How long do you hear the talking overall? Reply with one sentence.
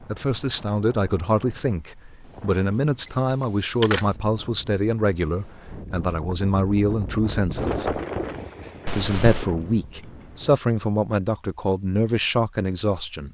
The talking can be heard for 12 seconds in total.